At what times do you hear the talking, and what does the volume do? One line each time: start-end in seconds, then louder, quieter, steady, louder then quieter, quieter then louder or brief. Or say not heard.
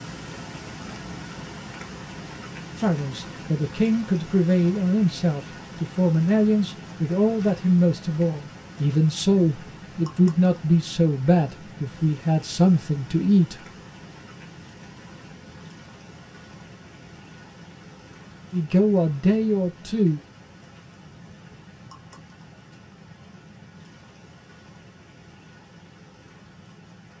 2.8-13.7 steady
18.5-20.2 brief.